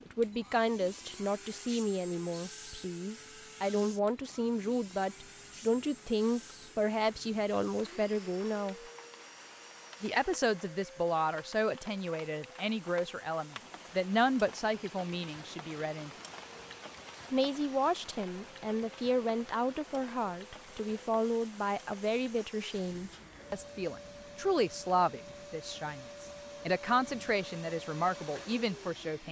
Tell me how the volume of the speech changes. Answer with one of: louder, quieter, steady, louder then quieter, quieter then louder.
steady.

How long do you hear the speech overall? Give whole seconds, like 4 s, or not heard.
27 s.